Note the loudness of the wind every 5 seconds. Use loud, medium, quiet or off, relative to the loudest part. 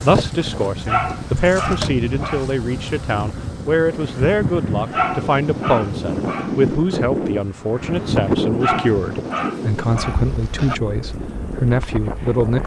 medium, loud, medium.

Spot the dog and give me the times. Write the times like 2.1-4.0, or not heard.
0.8-2.5, 4.9-6.8, 8.6-10.8.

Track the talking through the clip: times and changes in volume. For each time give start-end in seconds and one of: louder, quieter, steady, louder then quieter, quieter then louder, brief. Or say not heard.
0.0-12.6 steady.